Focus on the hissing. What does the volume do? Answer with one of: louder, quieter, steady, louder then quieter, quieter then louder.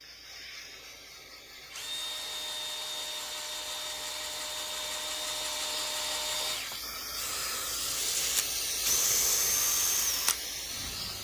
louder.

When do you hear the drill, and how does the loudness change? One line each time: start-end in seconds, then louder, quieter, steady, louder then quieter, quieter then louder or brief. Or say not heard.
0.0-11.2 louder.